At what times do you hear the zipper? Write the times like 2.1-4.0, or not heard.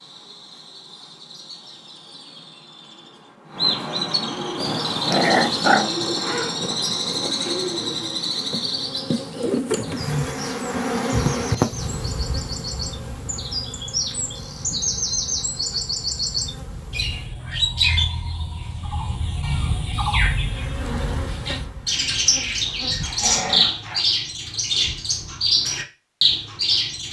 not heard.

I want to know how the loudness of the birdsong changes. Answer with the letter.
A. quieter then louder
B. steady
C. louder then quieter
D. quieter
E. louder
E.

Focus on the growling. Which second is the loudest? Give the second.
5 s.